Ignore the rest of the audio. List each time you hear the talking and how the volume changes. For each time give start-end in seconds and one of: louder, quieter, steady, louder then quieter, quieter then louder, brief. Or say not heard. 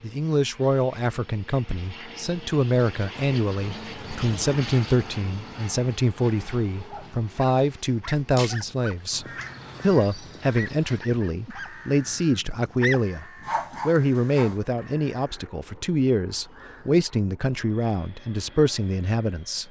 0.0-19.6 steady.